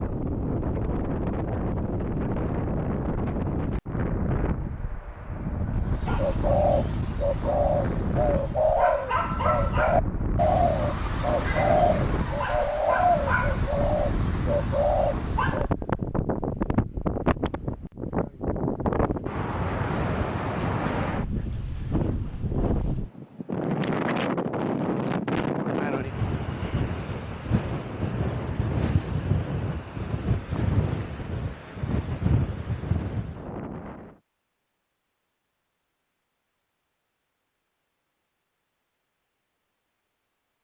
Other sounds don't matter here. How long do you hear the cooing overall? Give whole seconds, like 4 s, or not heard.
10 s.